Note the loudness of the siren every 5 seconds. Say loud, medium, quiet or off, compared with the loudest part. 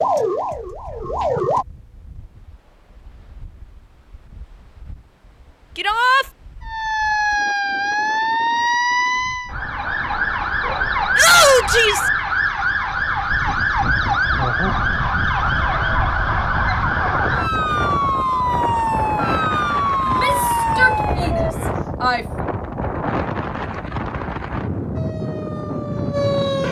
loud, loud, loud, loud, loud, medium.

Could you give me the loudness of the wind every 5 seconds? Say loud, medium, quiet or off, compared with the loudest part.
quiet, quiet, medium, loud, loud, loud.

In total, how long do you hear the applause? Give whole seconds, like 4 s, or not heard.
not heard.